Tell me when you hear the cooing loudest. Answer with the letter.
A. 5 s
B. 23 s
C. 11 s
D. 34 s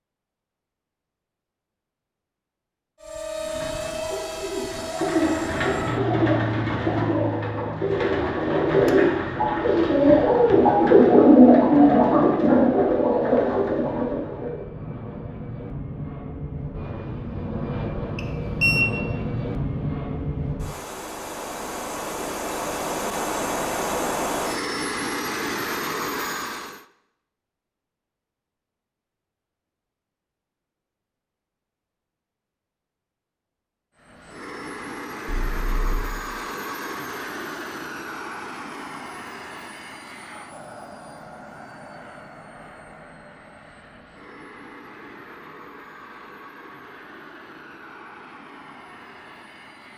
C.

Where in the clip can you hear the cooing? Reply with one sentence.
The cooing can be heard from 3.5 to 14.7 s.